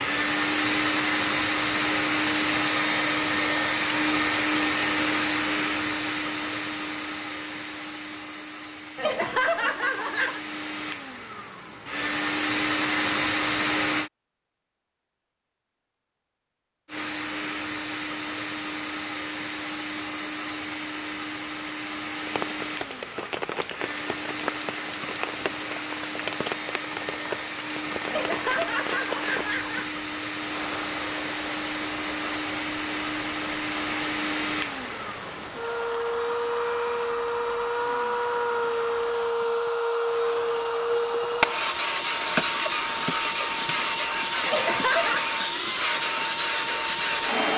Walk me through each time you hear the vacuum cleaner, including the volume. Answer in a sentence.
The vacuum cleaner can be heard from 0.0 to 14.1 s, getting quieter then louder; and from 16.9 to 47.5 s, getting louder.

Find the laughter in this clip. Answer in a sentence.
You can hear the laughter from 8.9 to 10.4 s, from 28.1 to 29.9 s and from 44.5 to 45.2 s.